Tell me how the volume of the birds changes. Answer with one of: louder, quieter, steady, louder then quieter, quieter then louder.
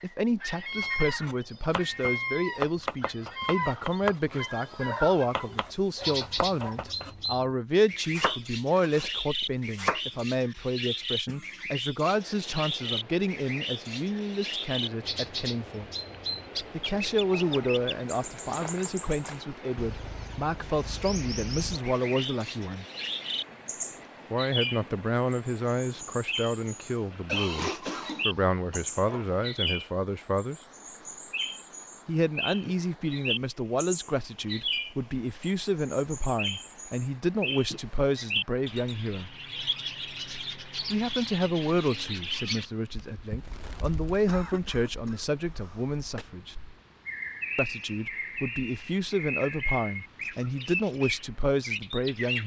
steady.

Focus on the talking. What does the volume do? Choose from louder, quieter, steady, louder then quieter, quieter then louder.
steady.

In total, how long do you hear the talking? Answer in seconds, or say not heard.
46 s.